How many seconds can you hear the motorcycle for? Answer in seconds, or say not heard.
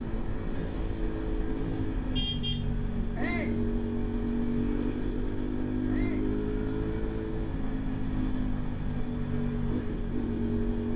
11 s.